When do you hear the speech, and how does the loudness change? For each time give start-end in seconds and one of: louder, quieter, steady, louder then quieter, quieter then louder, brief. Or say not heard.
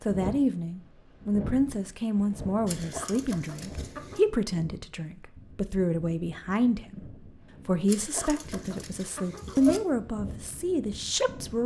0.0-11.6 steady.